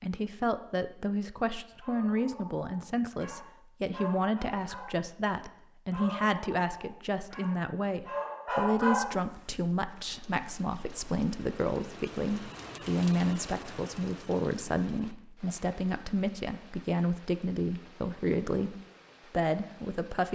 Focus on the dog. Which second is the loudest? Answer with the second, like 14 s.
9 s.